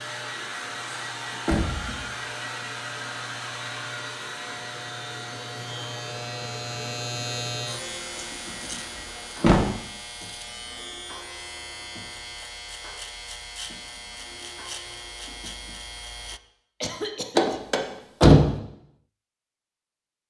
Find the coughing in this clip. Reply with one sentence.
You can hear the coughing from 16.8 to 17.6 s.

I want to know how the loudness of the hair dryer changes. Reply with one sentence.
The loudness of the hair dryer goes down.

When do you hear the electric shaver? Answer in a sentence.
You can hear the electric shaver from 0.0 to 16.4 s.